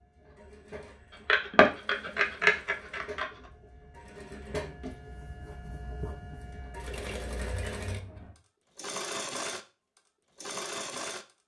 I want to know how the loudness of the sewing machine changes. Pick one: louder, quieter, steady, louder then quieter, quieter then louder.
louder.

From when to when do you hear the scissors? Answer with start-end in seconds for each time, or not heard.
1.2-3.2, 6.9-8.3.